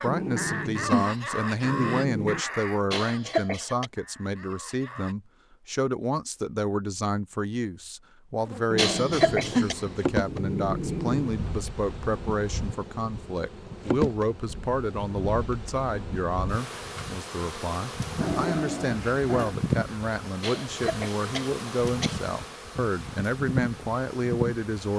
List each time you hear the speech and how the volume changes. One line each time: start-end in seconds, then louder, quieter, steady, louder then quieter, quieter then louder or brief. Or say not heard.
0.0-24.9 steady.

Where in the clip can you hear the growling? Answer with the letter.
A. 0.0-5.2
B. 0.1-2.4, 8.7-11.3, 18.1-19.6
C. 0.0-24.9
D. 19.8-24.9
B.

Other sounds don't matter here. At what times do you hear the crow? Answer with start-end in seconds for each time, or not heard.
0.0-5.2.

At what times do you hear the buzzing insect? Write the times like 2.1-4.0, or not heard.
8.4-24.9.